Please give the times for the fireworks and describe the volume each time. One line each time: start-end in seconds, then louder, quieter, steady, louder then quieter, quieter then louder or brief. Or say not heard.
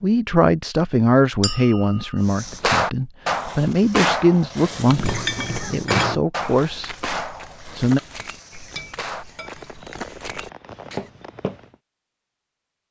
2.2-11.7 quieter.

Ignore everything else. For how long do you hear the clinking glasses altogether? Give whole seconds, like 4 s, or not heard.
4 s.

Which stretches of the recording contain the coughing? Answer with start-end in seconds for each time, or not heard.
5.1-5.9.